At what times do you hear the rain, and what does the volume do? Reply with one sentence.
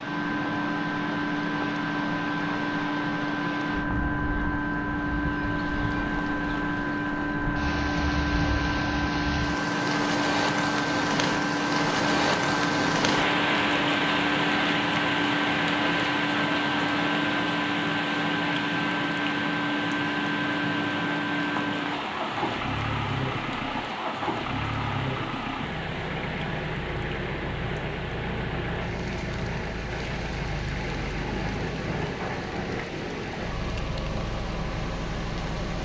You can hear the rain from 0.0 to 35.8 s, getting louder then quieter.